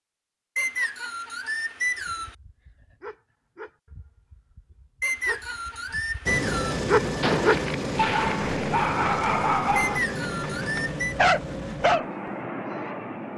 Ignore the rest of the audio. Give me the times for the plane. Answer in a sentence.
You can hear the plane from 6.2 to 13.3 s.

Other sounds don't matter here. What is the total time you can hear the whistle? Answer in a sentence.
You can hear the whistle for 5 seconds altogether.